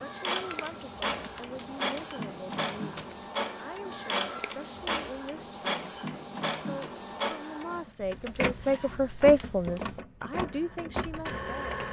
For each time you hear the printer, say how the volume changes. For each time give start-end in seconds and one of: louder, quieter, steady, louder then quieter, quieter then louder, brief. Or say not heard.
0.0-11.8 steady.